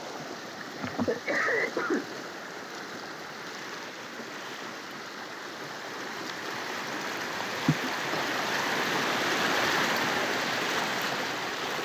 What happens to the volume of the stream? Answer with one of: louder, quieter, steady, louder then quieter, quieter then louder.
louder.